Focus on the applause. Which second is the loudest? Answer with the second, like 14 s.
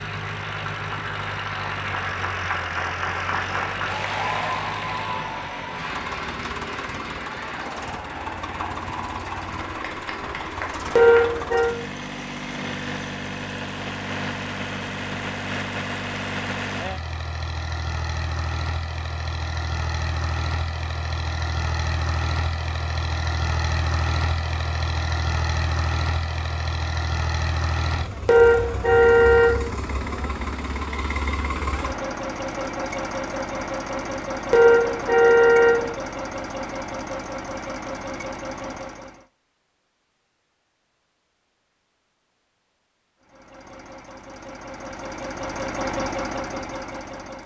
4 s.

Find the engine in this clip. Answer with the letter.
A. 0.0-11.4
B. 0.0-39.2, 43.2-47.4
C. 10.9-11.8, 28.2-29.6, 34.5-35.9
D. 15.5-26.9
B.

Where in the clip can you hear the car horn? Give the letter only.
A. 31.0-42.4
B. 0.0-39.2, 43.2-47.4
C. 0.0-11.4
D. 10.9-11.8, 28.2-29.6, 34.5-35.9
D.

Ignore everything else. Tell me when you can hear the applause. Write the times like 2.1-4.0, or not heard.
0.0-11.4.